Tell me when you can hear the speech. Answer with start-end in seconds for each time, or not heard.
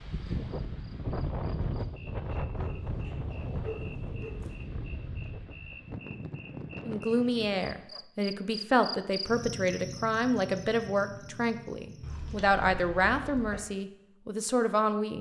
6.8-15.1.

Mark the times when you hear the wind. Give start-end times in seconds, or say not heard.
0.0-7.8.